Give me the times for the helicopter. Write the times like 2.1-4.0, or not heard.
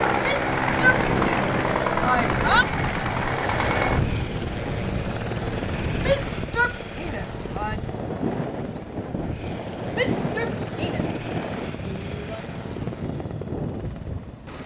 0.0-14.6.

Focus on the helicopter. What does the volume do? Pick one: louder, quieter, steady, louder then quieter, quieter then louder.
quieter.